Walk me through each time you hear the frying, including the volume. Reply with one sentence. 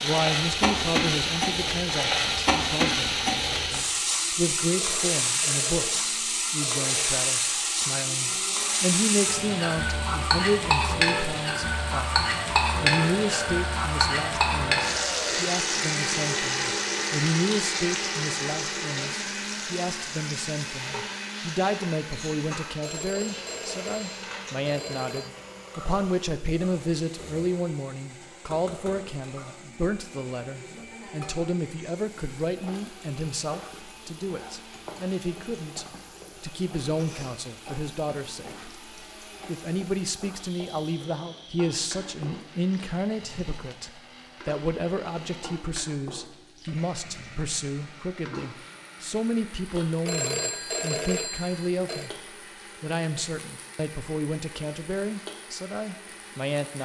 You can hear the frying from 0.0 to 56.8 s, getting quieter.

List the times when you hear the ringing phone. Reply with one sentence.
The ringing phone can be heard from 4.8 to 7.2 s, from 22.8 to 25.3 s and from 50.0 to 52.1 s.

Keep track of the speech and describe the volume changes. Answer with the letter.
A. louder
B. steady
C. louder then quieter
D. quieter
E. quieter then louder
B.